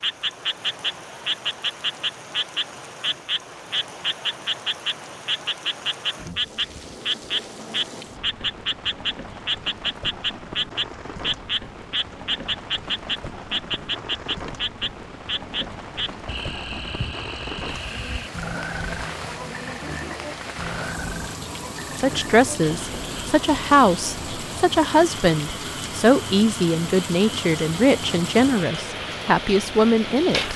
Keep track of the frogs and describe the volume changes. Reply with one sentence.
The loudness of the frogs goes down.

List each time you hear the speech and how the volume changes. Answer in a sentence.
You can hear the speech from 22.0 to 30.5 s, at a steady volume.